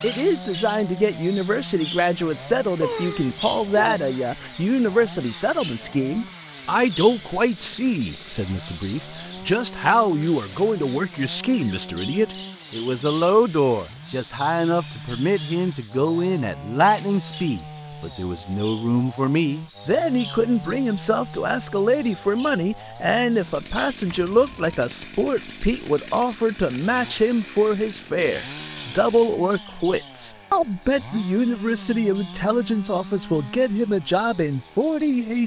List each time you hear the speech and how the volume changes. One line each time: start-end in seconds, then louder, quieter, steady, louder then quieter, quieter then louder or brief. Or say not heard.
0.0-35.4 steady.